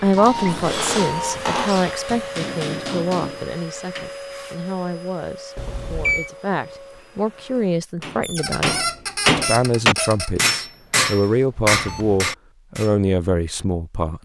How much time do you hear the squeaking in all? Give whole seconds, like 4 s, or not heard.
4 s.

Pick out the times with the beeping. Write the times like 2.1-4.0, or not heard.
0.1-1.4, 5.5-6.3, 11.7-12.2.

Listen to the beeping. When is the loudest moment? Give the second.
6 s.